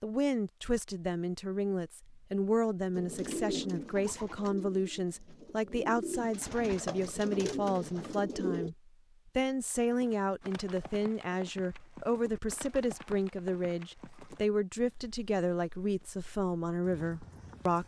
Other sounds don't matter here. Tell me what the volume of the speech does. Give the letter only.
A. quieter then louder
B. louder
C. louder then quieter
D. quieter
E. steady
E.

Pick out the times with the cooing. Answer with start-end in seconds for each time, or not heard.
3.0-8.7.